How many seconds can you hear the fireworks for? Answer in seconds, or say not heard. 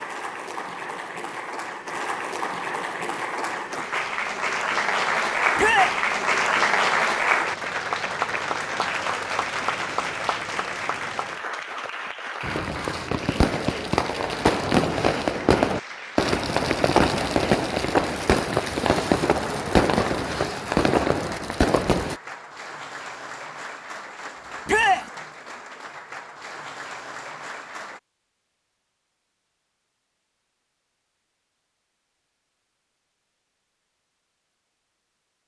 10 s.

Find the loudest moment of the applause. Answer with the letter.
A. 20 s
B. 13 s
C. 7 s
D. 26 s
C.